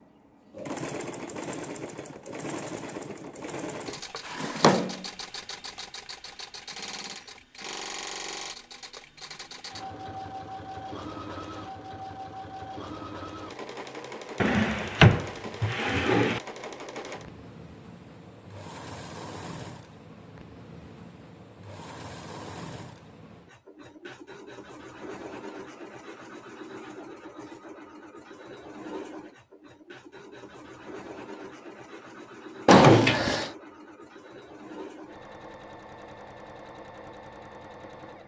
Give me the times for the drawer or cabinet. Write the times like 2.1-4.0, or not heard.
4.2-5.0, 14.4-16.4, 32.6-33.5.